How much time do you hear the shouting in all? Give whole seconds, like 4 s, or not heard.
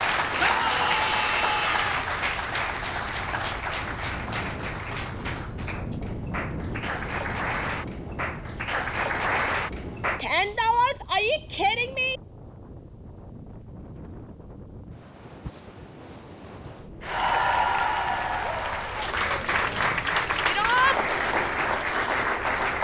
4 s.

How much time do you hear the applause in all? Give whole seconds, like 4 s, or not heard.
16 s.